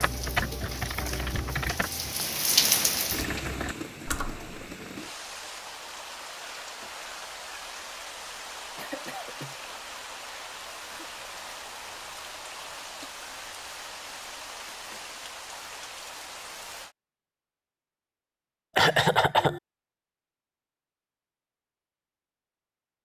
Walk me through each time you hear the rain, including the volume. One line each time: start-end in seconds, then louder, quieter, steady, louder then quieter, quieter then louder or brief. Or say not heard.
0.0-16.9 quieter.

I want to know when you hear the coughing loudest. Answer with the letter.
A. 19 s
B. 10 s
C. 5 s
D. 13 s
A.